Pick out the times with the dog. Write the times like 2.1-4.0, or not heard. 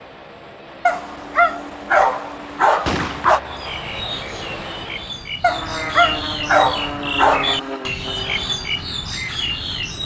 0.8-3.4, 5.4-7.9.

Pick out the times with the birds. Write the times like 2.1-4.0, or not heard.
3.5-10.0.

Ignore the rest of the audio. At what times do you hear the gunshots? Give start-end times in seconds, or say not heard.
2.8-4.1.